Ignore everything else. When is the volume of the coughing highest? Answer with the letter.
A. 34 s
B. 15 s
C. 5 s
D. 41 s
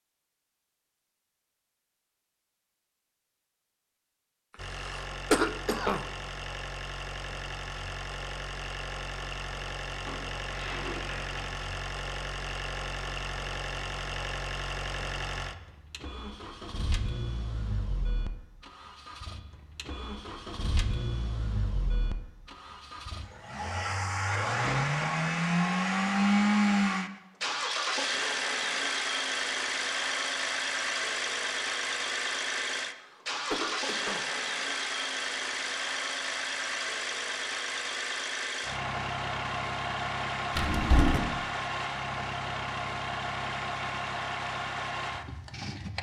C.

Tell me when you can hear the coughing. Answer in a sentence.
The coughing can be heard from 4.8 to 6.0 s and from 33.0 to 34.2 s.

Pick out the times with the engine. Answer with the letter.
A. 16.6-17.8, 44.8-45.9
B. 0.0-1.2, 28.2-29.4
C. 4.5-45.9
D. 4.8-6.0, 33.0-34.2
C.